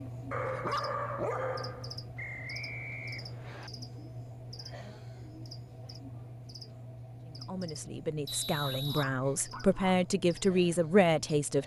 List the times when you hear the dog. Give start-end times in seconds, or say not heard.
0.3-2.0, 8.6-10.0.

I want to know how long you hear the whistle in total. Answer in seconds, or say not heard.
3 s.